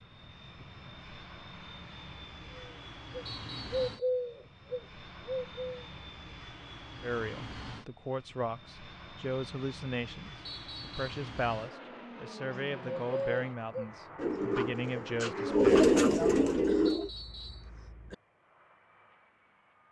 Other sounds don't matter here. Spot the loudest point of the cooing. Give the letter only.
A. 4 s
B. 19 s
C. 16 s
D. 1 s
C.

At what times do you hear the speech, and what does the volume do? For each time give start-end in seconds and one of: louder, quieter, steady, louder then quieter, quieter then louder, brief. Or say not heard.
7.0-15.8 steady.